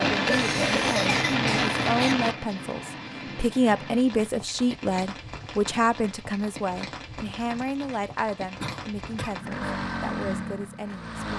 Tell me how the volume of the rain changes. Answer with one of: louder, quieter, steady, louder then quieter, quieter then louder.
quieter.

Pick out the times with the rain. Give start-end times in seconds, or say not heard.
0.0-9.4.